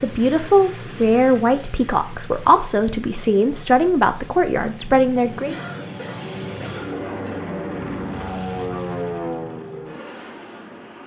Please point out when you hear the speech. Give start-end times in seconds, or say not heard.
0.0-5.5.